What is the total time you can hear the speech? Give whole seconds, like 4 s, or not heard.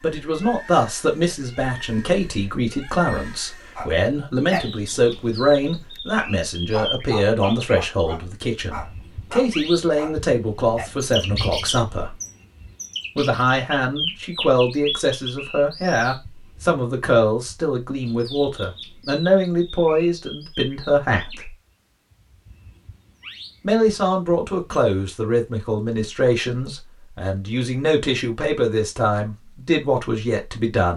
28 s.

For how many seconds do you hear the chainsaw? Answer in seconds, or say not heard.
not heard.